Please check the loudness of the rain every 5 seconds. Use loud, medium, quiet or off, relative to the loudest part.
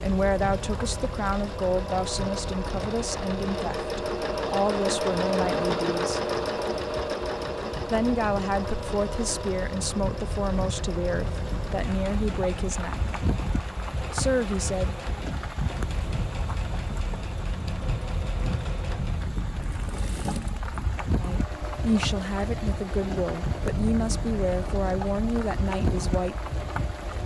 medium, medium, loud, loud, loud, loud.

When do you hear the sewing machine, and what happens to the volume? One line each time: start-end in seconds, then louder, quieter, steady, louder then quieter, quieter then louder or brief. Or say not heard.
0.0-27.2 quieter.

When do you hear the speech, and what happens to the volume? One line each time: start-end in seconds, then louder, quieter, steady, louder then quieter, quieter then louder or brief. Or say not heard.
0.0-6.2 steady
7.9-13.1 steady
14.1-15.2 brief
21.0-26.5 steady.